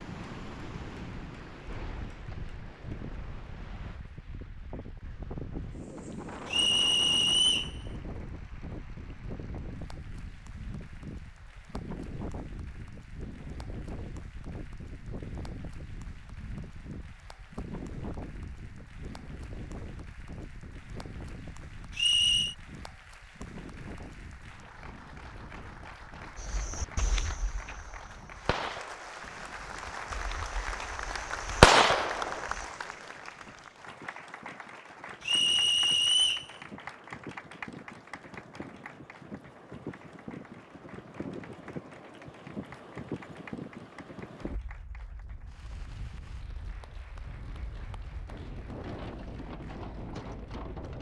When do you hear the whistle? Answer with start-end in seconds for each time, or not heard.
6.5-7.7, 21.9-22.6, 35.2-36.5.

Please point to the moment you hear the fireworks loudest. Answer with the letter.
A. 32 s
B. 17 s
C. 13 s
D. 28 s
A.